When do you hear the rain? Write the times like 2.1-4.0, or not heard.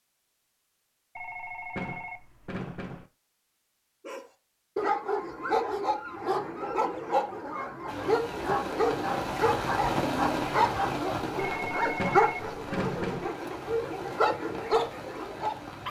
7.8-15.8.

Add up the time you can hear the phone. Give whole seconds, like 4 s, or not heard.
4 s.